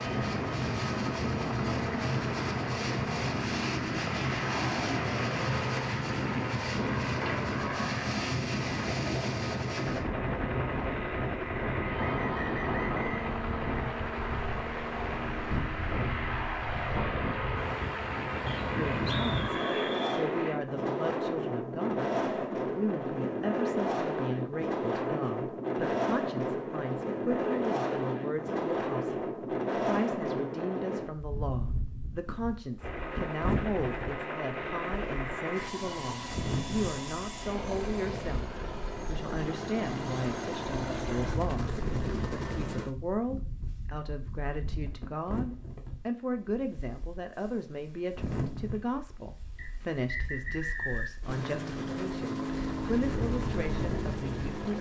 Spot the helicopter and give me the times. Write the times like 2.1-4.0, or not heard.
0.0-20.6, 32.8-43.0, 51.2-54.7.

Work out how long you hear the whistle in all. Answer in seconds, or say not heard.
5 s.